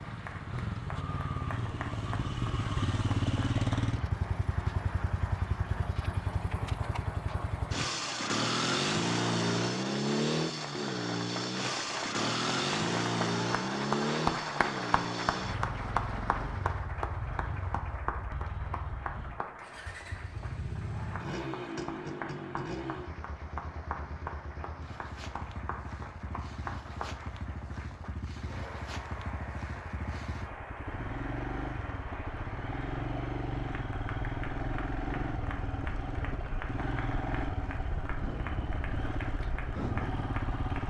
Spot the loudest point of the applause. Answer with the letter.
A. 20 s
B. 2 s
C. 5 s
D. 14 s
D.